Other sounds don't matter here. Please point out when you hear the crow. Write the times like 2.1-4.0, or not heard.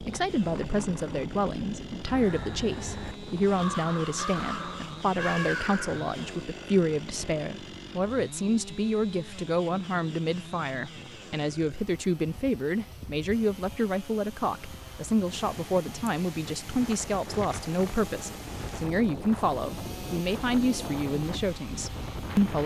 0.5-6.2.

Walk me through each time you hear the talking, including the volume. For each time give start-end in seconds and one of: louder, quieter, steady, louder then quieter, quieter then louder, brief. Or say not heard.
0.0-22.6 steady.